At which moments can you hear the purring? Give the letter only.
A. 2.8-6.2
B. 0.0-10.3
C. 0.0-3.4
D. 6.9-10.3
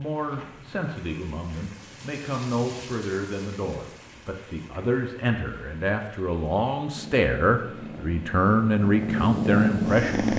D.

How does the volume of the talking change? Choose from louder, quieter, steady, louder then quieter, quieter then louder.
louder.